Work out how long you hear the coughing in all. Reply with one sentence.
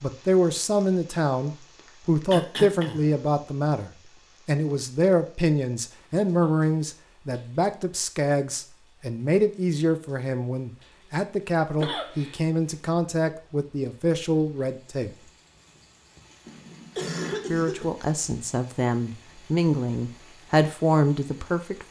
The coughing can be heard for 3 seconds in total.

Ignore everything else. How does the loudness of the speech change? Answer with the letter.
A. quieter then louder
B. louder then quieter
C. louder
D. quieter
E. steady
E.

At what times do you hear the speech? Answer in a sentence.
The speech can be heard from 0.0 to 15.2 s and from 17.5 to 21.8 s.